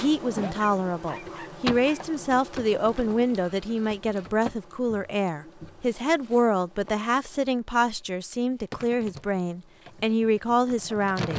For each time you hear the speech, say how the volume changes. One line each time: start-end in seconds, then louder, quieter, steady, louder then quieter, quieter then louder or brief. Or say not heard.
0.0-11.3 steady.